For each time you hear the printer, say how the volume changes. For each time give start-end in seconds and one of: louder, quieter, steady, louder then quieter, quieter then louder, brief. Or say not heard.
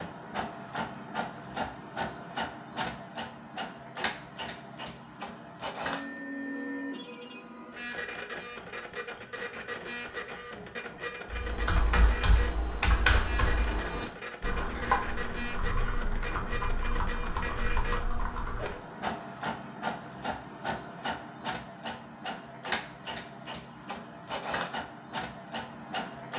0.0-26.3 steady.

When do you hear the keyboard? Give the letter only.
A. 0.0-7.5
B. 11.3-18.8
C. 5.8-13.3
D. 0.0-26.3
B.